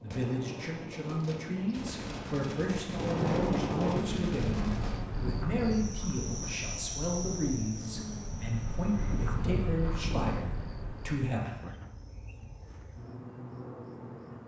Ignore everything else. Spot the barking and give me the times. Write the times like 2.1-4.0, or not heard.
not heard.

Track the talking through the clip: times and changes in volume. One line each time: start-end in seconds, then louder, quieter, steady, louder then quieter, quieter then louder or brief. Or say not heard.
0.0-11.6 steady.